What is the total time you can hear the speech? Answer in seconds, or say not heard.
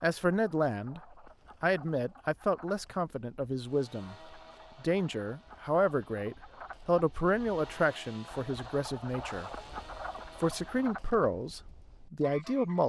11 s.